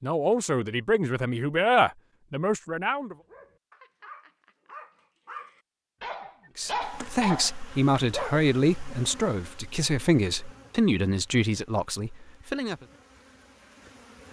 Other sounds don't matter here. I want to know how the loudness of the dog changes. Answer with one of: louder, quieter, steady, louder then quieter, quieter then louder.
louder.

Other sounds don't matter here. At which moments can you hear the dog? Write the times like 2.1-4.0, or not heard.
3.0-8.4.